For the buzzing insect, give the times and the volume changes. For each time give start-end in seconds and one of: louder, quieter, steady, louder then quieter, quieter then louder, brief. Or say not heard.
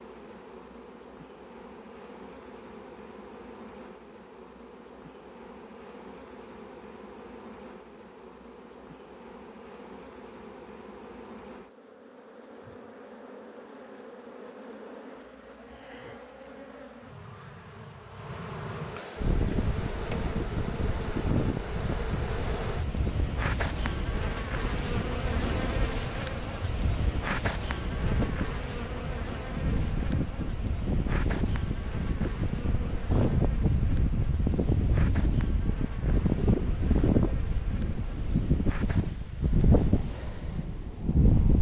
0.0-39.1 louder then quieter.